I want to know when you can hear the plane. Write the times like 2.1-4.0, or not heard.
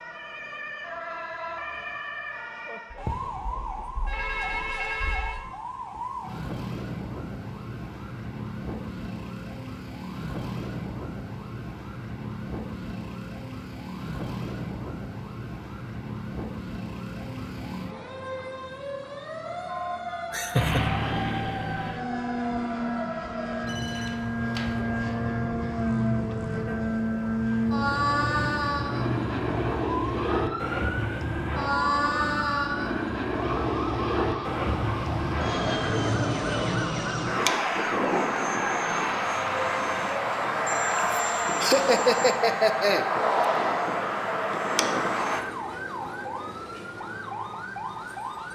20.5-45.5.